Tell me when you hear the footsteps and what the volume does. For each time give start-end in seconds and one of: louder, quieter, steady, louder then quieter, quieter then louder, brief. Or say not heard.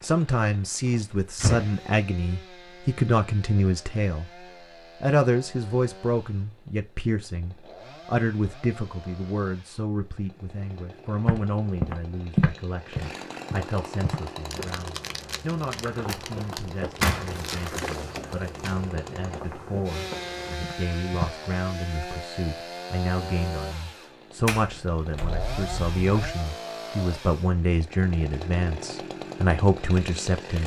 11.2-21.4 quieter.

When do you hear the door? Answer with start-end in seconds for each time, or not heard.
0.8-1.8, 16.1-17.9, 24.4-26.4.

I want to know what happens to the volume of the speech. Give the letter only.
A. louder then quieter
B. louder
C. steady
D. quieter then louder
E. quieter
D.